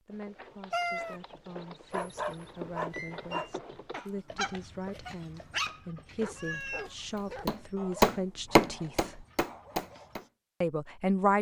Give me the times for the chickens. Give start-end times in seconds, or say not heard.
not heard.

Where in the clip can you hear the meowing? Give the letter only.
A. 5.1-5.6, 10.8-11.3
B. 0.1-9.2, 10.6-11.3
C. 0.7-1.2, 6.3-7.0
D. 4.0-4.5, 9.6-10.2
C.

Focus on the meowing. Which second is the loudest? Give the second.
1 s.